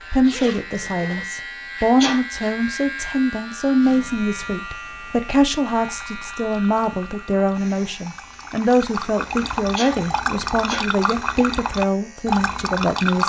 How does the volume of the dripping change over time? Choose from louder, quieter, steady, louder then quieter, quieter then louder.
louder.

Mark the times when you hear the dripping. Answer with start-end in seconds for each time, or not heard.
5.8-13.2.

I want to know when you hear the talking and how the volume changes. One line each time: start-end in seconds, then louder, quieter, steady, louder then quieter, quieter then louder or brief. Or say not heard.
0.1-13.2 steady.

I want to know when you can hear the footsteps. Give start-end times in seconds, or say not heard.
not heard.